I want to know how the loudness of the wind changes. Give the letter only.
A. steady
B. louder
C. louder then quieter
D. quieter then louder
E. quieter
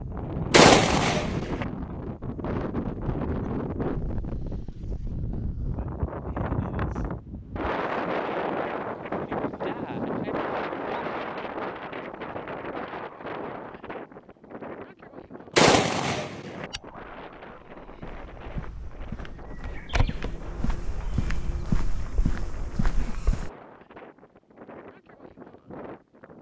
E.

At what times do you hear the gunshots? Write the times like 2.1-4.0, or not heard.
0.5-1.6, 15.6-16.6.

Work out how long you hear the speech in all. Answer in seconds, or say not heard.
not heard.